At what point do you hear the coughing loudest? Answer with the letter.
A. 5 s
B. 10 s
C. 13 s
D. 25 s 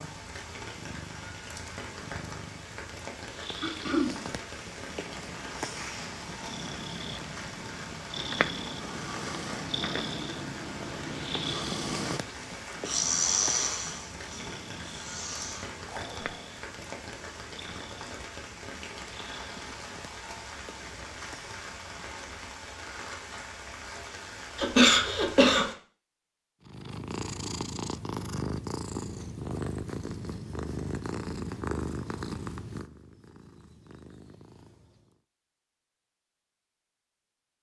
D.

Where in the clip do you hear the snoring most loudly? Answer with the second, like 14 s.
13 s.